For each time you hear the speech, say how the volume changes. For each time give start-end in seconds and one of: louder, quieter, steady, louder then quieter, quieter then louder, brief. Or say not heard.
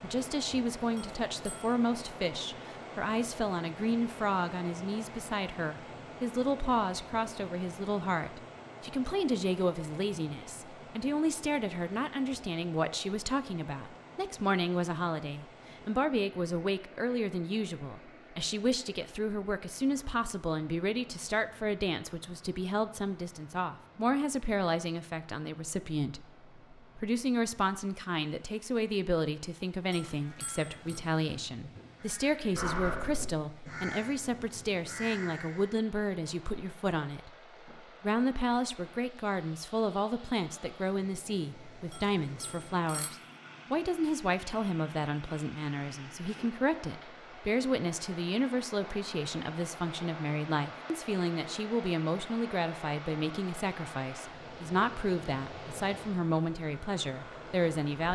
0.0-58.0 steady.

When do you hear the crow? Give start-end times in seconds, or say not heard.
30.2-35.7.